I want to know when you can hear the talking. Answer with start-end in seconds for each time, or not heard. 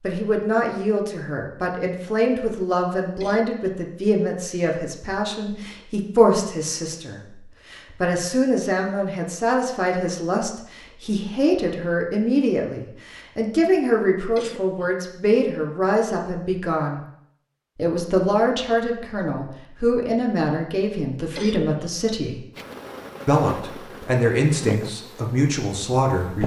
0.0-17.1, 17.8-22.4, 23.2-26.4.